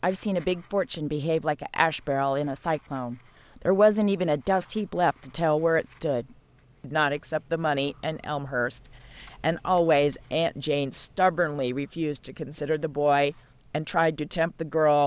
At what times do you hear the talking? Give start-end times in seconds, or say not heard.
0.0-15.0.